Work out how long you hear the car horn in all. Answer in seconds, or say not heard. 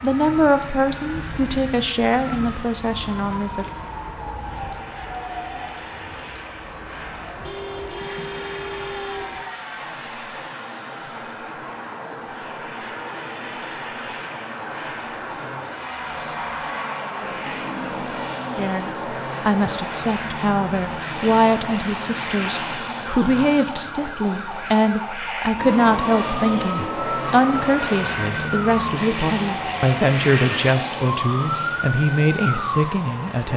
2 s.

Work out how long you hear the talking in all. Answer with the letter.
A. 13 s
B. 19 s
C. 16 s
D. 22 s
B.